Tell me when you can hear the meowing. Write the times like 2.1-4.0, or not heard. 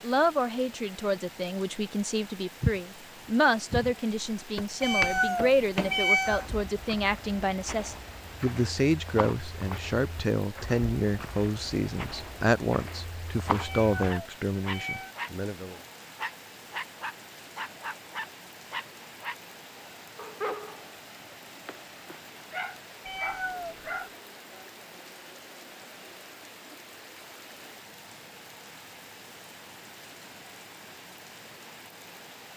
4.8-6.5, 13.6-15.2, 23.0-23.9.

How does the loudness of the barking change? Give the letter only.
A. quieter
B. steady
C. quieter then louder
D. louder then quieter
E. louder
B.